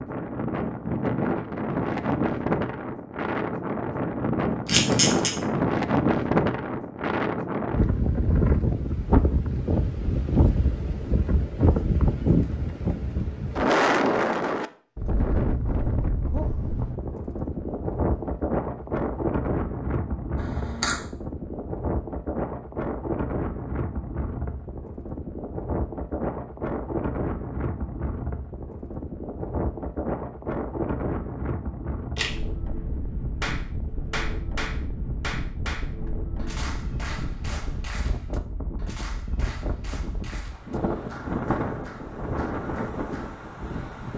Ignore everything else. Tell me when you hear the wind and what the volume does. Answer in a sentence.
You can hear the wind from 0.0 to 44.1 s, getting quieter.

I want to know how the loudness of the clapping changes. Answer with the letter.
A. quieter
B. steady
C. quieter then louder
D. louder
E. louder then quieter
A.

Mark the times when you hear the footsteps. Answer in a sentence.
You can't hear the footsteps here.